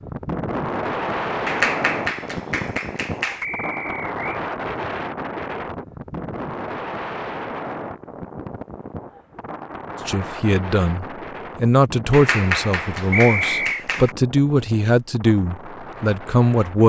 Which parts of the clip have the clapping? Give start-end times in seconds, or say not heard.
1.4-3.5, 12.1-14.2.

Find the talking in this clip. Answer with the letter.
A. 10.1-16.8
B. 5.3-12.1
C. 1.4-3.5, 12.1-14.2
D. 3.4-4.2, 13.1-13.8
A.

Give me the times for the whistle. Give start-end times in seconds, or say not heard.
3.4-4.2, 13.1-13.8.